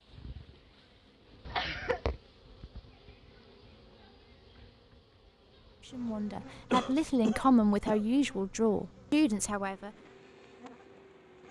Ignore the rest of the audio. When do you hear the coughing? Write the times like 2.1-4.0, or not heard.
1.4-2.0, 6.7-8.1.